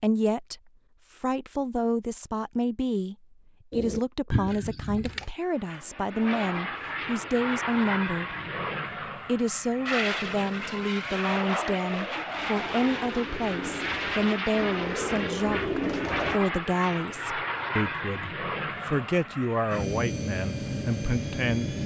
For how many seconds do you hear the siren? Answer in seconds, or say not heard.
not heard.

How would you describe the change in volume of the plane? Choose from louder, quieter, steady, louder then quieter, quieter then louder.
steady.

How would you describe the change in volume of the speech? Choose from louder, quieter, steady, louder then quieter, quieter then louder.
steady.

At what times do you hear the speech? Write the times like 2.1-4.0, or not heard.
0.0-3.1, 3.8-8.3, 9.2-21.8.